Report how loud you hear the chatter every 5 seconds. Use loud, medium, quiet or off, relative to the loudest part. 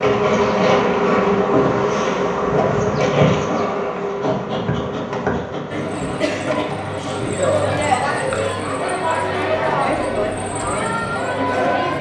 off, loud, loud.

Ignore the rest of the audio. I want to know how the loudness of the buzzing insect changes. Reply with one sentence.
The loudness of the buzzing insect goes down.